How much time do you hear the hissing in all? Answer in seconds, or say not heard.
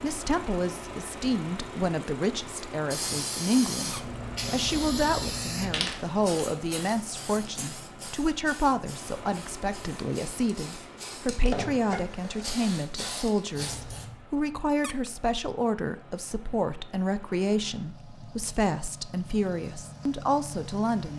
12 s.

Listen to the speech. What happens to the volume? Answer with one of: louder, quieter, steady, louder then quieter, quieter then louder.
steady.